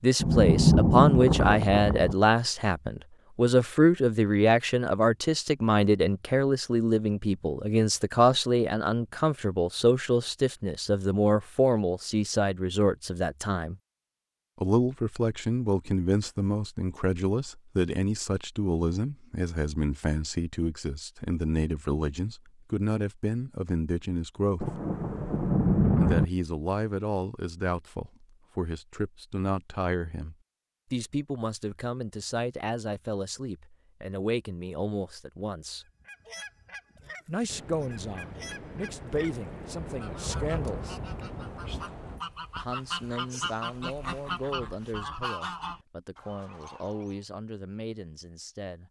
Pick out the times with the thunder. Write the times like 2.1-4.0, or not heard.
0.2-2.1, 24.6-26.2, 37.5-42.2.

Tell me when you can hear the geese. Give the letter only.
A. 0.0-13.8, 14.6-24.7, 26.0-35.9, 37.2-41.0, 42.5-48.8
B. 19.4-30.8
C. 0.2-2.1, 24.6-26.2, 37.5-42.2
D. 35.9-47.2
D.